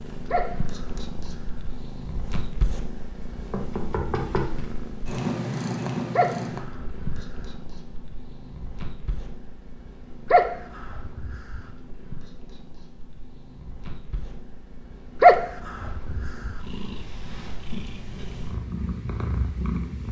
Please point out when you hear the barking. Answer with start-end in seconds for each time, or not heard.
0.3-1.6, 6.2-7.5, 10.3-11.6, 15.2-16.6.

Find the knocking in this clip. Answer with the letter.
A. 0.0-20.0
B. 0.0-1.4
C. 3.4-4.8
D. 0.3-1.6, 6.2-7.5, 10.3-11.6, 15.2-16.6
C.